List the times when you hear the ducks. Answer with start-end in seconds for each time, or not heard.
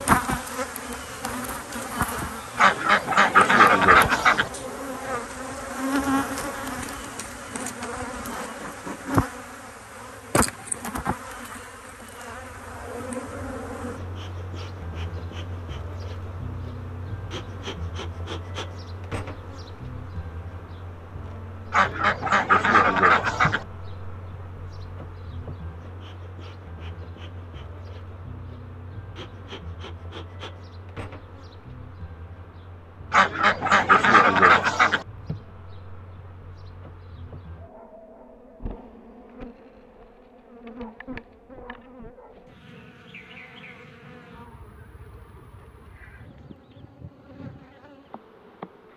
2.5-4.5, 21.7-23.6, 33.1-35.0.